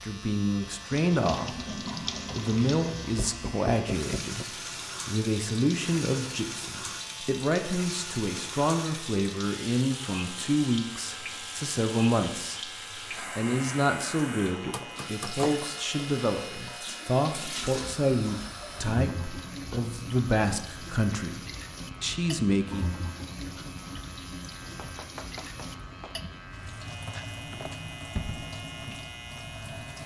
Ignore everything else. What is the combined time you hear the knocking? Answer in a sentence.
The knocking can be heard for 4 seconds in total.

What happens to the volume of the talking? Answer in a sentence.
The loudness of the talking stays about the same.